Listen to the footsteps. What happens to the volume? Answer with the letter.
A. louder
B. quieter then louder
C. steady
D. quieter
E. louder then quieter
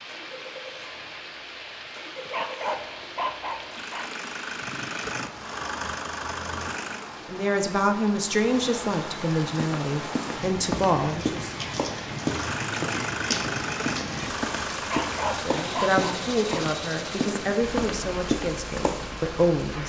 C.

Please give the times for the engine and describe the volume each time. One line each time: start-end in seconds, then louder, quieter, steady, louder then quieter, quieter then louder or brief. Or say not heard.
0.0-7.1 louder
12.2-19.8 quieter.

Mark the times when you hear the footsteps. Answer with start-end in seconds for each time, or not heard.
9.6-19.1.